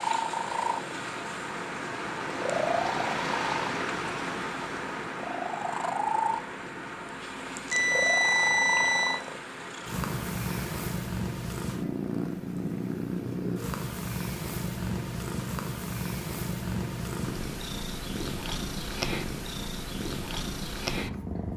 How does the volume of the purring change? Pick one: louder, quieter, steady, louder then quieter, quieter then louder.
steady.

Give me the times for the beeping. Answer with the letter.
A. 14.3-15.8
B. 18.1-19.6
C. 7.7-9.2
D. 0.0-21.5
C.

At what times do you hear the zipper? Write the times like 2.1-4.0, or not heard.
not heard.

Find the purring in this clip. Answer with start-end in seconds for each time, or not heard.
0.0-21.5.